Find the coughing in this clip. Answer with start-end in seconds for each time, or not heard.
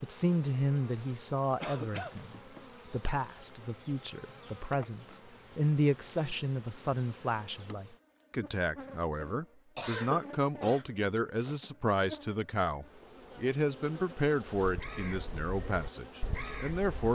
1.6-2.2, 9.8-11.6.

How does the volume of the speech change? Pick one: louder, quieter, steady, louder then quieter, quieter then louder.
steady.